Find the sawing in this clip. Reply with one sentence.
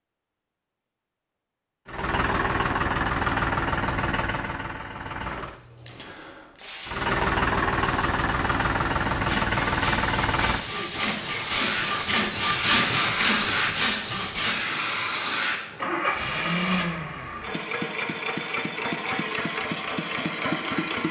The sawing can be heard from 9.2 to 14.6 s.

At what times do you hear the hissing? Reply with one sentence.
The hissing can be heard from 5.5 to 16.2 s.